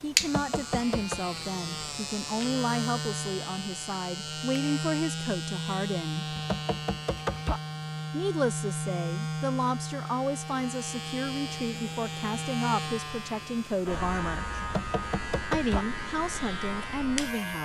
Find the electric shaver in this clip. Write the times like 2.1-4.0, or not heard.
0.0-17.6.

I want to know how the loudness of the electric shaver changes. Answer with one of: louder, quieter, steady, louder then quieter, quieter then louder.
steady.